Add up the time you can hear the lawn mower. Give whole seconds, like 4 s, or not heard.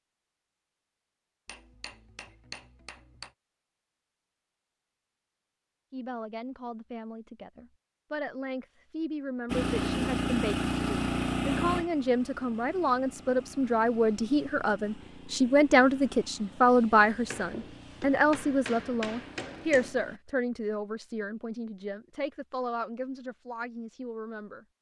11 s.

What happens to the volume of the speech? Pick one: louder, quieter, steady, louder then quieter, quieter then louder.
louder then quieter.